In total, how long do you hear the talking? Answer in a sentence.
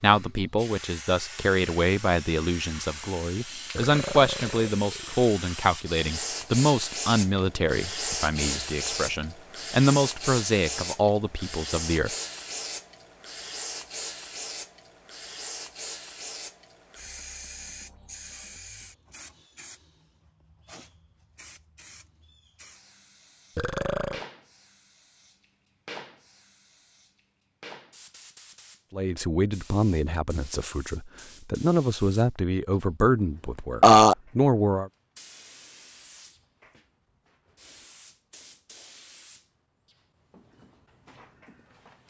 The talking can be heard for 18 seconds in total.